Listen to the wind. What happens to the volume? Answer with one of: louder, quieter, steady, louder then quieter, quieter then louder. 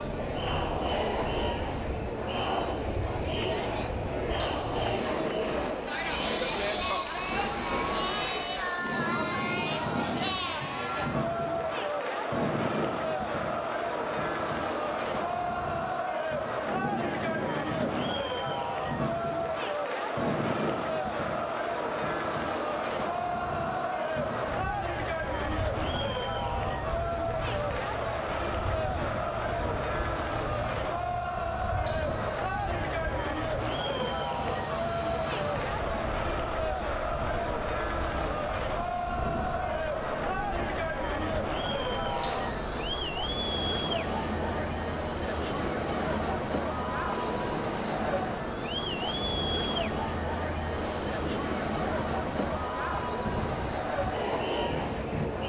steady.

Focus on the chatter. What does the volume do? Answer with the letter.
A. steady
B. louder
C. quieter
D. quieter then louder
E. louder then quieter
A.